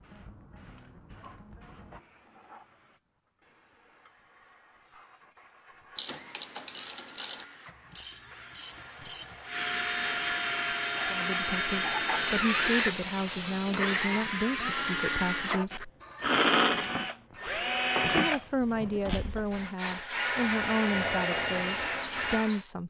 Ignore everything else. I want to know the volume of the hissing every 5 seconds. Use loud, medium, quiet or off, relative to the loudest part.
quiet, quiet, loud, medium, off.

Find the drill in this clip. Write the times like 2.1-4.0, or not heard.
6.0-22.6.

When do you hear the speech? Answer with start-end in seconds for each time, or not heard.
11.1-15.9, 18.1-22.8.